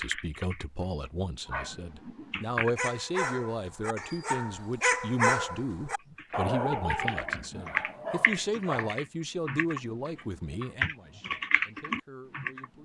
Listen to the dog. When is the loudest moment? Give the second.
5 s.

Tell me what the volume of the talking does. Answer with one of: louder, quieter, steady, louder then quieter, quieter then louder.
quieter.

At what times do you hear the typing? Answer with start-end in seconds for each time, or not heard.
0.0-2.9, 6.0-12.7.